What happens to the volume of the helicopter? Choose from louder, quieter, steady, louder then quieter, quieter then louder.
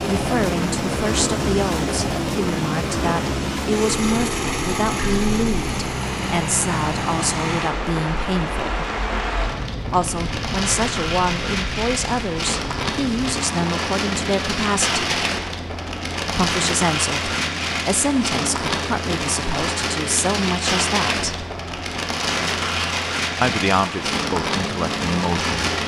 quieter.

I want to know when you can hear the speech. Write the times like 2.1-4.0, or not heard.
0.1-8.8, 9.9-15.2, 16.3-21.4, 23.4-25.7.